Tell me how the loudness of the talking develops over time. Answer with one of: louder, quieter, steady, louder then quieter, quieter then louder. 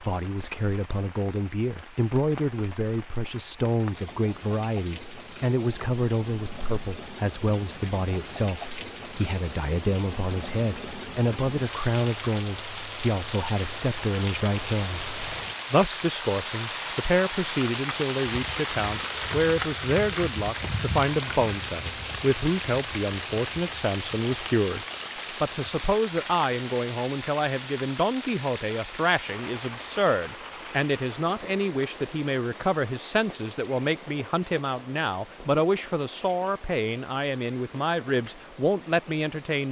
steady.